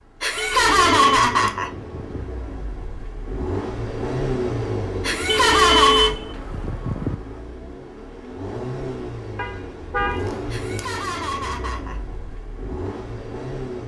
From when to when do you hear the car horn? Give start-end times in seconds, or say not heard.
0.3-2.2, 5.2-7.2, 9.3-10.3.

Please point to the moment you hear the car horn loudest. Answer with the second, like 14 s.
6 s.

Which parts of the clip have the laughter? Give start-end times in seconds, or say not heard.
0.2-1.7, 5.0-6.2, 10.5-12.0.